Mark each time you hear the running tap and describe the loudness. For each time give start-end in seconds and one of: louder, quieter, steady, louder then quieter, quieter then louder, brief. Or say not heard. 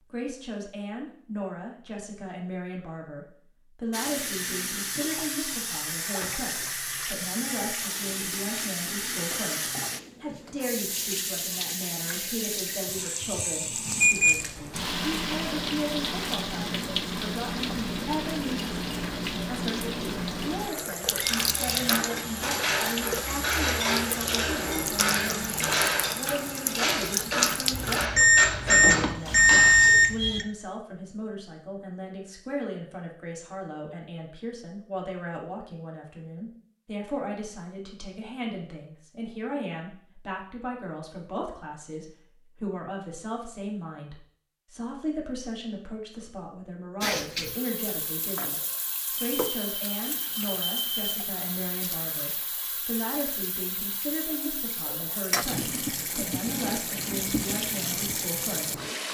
3.9-28.1 steady
47.0-59.0 louder.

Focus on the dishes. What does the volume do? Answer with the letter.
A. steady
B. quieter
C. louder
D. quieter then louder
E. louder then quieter
A.